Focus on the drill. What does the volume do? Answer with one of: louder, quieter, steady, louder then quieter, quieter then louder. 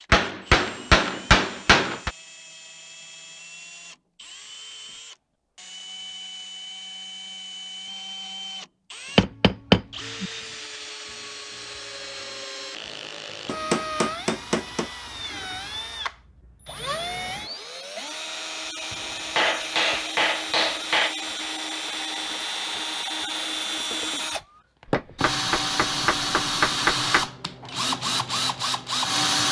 louder.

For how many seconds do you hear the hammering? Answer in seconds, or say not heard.
9 s.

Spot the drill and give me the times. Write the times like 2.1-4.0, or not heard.
0.0-29.4.